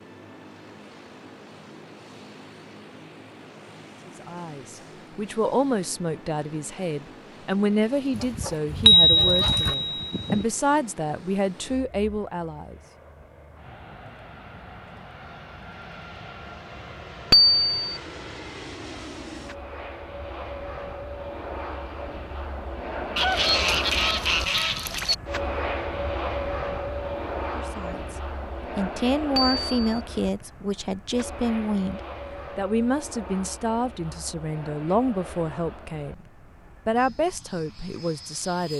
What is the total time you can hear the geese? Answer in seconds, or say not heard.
4 s.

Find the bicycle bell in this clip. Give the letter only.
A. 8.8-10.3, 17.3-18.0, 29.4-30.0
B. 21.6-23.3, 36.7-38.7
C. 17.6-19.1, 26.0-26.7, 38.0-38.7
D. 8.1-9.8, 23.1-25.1
A.